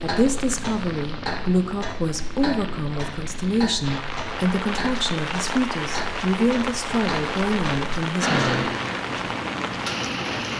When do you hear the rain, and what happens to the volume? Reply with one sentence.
The rain can be heard from 0.0 to 10.5 s, getting louder.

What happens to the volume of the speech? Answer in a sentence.
The volume of the speech stays about the same.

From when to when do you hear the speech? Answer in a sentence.
The speech can be heard from 0.0 to 8.7 s.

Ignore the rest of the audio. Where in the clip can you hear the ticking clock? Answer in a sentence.
The ticking clock can be heard from 0.0 to 10.5 s.